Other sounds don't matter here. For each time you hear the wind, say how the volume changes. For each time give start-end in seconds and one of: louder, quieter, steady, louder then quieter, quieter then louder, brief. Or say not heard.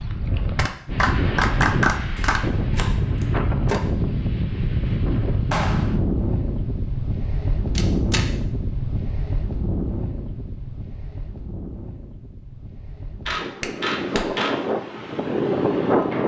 0.0-16.2 quieter then louder.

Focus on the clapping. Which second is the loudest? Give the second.
2 s.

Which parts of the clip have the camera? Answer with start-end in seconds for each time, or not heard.
2.1-3.8, 7.8-8.2, 13.2-14.6.